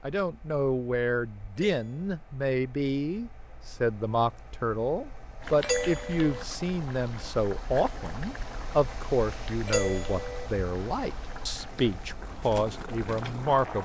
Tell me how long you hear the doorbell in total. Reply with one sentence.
You can hear the doorbell for 2 seconds altogether.